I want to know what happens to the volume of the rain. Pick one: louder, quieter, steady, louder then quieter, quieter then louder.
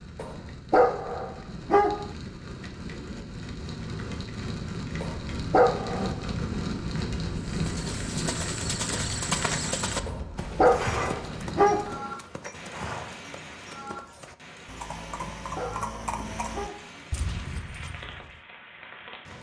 louder then quieter.